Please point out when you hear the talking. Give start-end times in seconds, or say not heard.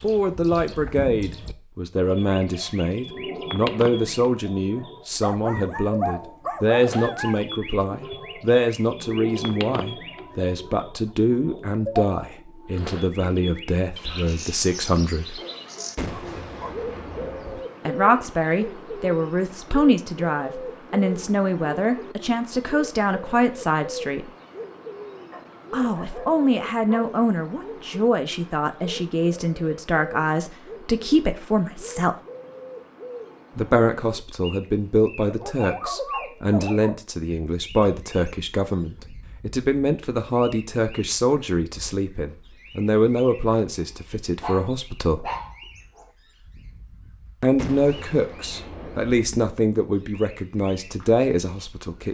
0.0-15.3, 17.9-24.3, 25.7-32.1, 33.5-45.2, 47.4-52.0.